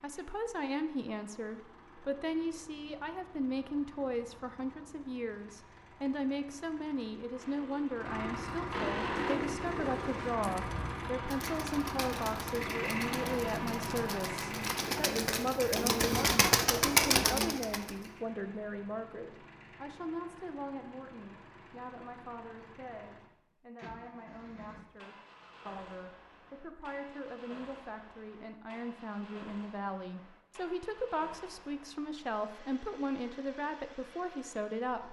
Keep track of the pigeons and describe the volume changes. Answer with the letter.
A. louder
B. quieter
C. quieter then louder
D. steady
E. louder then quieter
A.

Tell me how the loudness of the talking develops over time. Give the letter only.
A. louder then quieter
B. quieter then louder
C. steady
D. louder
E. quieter
B.